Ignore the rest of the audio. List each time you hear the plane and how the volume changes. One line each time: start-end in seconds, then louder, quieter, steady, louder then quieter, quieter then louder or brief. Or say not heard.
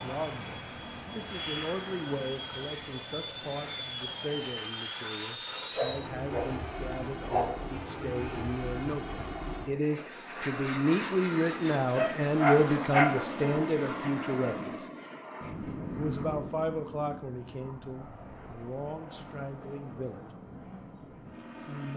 0.0-21.9 quieter.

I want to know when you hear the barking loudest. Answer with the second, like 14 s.
13 s.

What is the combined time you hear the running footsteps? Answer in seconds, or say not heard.
not heard.